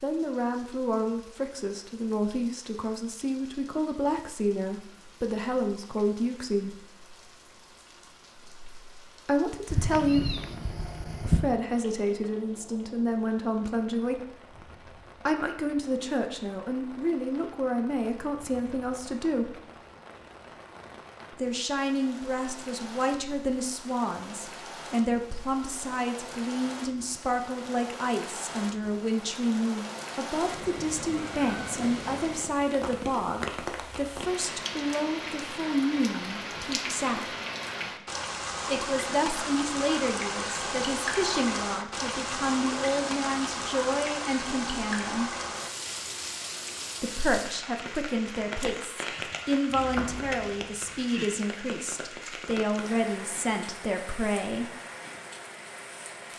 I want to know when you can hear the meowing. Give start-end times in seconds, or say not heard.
9.7-11.4, 30.6-32.5.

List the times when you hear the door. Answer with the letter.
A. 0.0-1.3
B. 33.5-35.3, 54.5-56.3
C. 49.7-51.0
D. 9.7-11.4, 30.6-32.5
C.